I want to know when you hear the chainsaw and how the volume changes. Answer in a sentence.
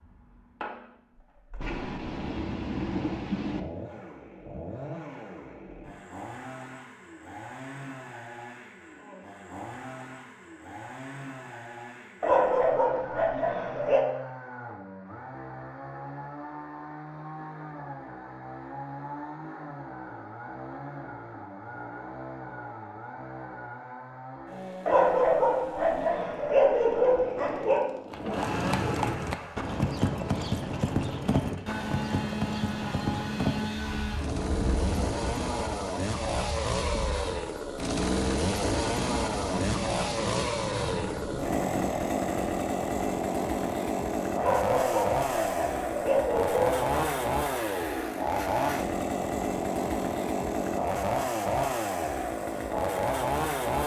The chainsaw can be heard from 0.0 to 53.8 s, getting louder.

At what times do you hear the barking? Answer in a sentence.
You can hear the barking from 12.2 to 14.1 s, from 24.9 to 27.8 s and from 44.4 to 47.2 s.